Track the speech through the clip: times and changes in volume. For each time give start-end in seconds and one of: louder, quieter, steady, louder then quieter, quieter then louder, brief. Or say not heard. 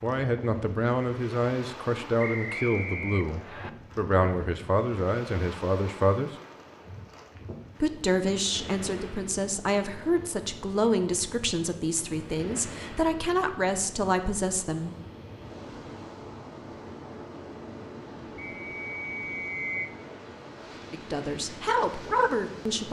0.0-6.3 steady
7.8-14.9 steady
20.9-22.8 brief.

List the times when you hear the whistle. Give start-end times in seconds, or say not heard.
2.1-3.7, 18.4-19.9.